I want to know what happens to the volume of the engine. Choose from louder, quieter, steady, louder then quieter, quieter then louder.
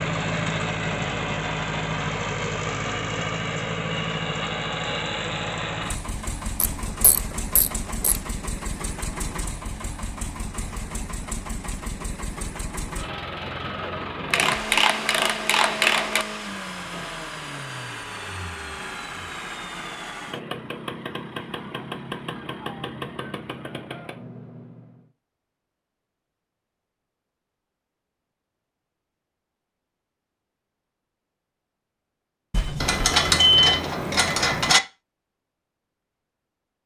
quieter.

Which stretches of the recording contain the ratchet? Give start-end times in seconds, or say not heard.
6.6-8.2, 14.3-16.2, 32.8-34.8.